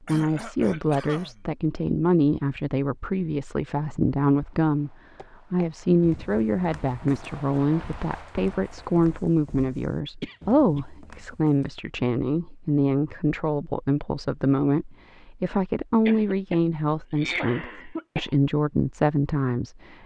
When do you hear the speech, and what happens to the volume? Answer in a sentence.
You can hear the speech from 0.1 to 19.9 s, at a steady volume.